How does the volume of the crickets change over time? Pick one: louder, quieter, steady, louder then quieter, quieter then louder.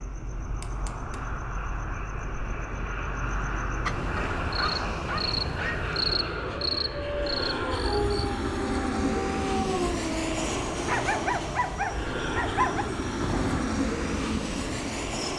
louder then quieter.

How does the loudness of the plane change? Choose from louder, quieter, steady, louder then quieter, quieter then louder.
louder.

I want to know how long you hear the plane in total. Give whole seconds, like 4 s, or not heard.
15 s.